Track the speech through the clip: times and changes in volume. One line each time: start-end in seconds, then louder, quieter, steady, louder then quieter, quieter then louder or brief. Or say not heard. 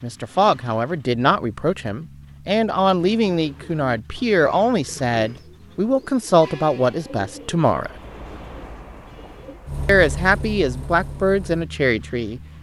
0.0-7.9 steady
9.8-12.4 brief.